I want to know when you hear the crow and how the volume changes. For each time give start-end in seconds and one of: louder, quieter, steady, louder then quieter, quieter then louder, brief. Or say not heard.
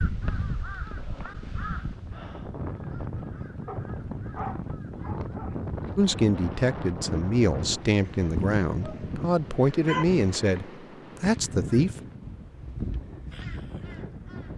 0.0-6.0 quieter
11.7-14.5 brief.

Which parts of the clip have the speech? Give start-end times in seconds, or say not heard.
6.0-11.9.